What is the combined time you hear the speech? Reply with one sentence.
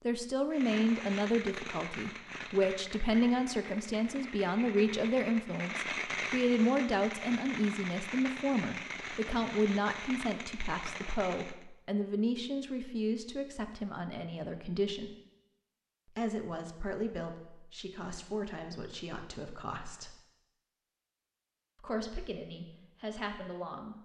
The speech can be heard for 21 seconds in total.